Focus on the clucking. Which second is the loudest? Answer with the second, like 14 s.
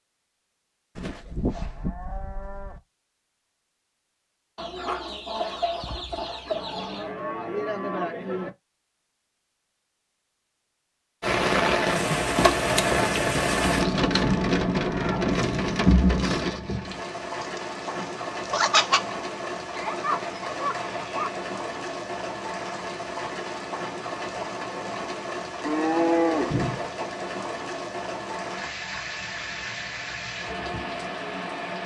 19 s.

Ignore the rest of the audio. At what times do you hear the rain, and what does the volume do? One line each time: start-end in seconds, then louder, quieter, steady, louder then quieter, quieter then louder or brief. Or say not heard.
11.2-31.8 quieter.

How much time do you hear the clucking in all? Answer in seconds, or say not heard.
4 s.